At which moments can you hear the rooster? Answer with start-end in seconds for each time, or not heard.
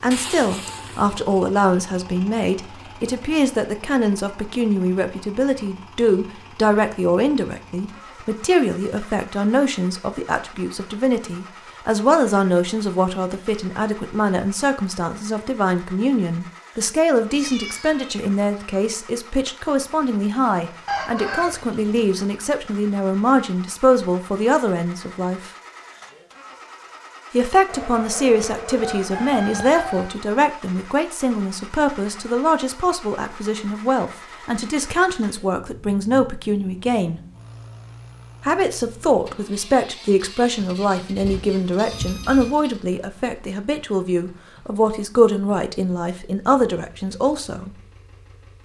20.9-22.1, 27.6-30.1.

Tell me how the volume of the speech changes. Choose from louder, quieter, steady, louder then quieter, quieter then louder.
steady.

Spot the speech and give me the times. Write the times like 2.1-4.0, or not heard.
0.0-25.5, 27.3-37.2, 38.4-47.8.